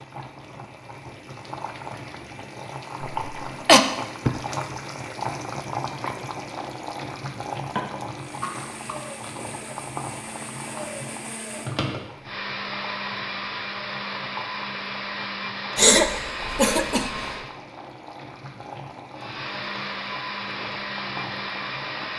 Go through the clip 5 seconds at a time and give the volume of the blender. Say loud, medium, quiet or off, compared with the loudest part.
off, medium, loud, loud, loud.